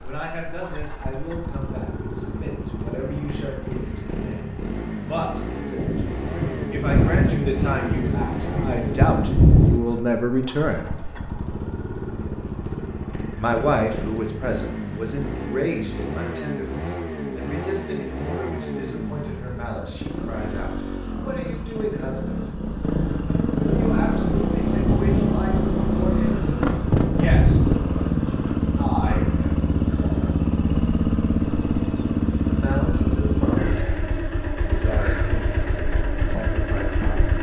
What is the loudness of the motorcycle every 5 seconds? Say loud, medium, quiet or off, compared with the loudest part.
medium, medium, medium, medium, loud, loud, loud, medium.